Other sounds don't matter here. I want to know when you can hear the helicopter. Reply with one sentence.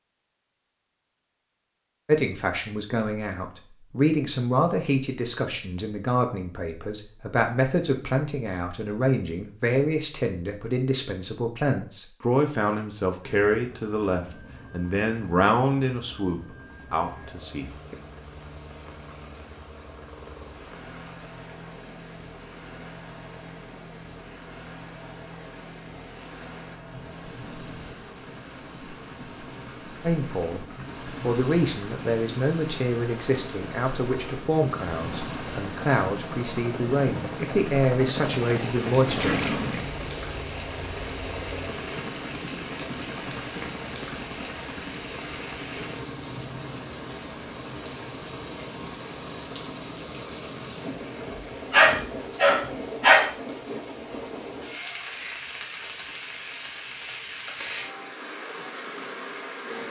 The helicopter can be heard from 13.2 to 51.4 s.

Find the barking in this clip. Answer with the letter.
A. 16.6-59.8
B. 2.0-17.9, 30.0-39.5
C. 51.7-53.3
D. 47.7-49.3
C.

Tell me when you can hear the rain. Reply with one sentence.
The rain can be heard from 16.6 to 59.8 s.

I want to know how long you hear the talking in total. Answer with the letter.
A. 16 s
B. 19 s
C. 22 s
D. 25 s
D.